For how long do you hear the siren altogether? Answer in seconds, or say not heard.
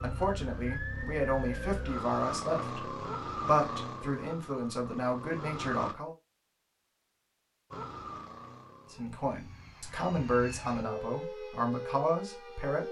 11 s.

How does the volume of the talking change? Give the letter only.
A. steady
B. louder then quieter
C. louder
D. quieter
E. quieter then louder
A.